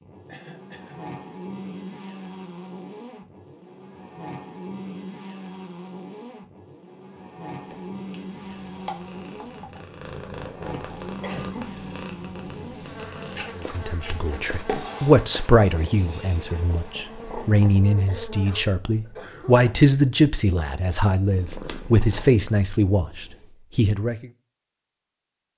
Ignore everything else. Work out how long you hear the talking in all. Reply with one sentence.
The talking can be heard for 11 seconds in total.